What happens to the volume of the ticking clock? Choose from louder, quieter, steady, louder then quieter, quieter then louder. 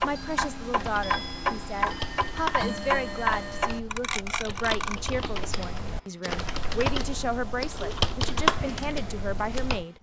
quieter.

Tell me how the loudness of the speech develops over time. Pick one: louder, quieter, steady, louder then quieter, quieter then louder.
steady.